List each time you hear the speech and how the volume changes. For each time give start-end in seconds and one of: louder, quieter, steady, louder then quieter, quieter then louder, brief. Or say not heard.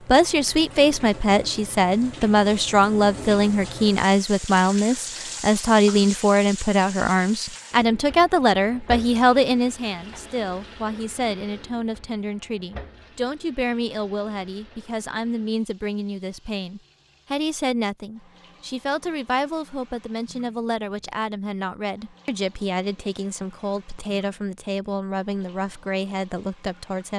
0.1-27.1 quieter.